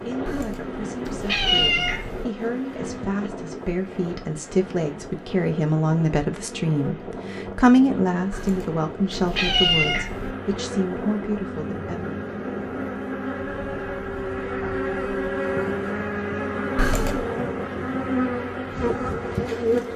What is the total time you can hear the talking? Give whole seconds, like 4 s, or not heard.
12 s.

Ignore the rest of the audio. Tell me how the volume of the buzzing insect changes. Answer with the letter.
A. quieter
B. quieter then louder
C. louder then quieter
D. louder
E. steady
D.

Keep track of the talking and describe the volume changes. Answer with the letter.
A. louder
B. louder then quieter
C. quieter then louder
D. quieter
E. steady
B.